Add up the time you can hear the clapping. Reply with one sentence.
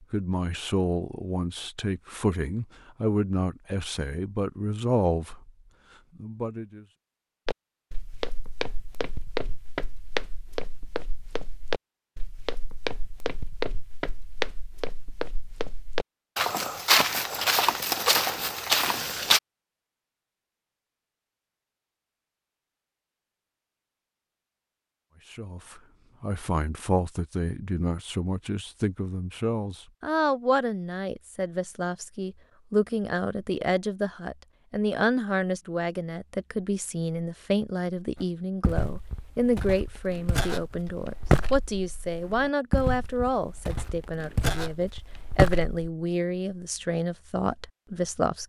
The clapping can't be heard in this clip.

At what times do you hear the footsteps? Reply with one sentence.
You can hear the footsteps from 7.5 to 19.4 s and from 38.1 to 45.9 s.